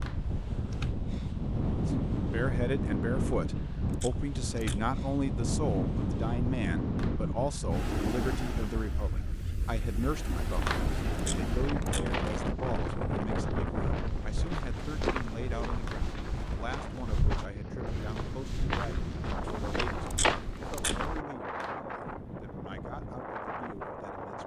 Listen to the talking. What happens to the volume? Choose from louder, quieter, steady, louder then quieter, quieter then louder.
quieter.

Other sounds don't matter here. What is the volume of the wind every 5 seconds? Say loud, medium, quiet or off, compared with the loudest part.
loud, loud, loud, medium, medium.